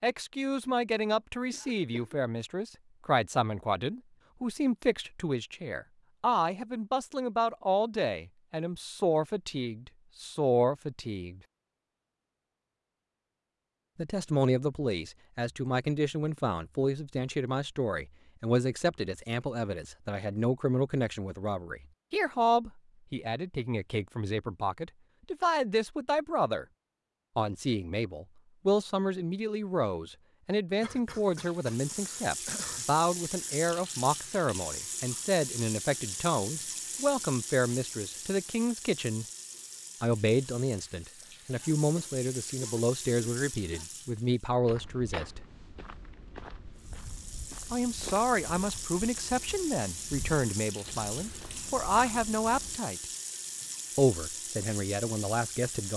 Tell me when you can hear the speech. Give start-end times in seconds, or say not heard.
0.0-11.4, 13.9-26.6, 27.4-39.2, 40.0-45.5, 47.7-53.0, 54.0-55.9.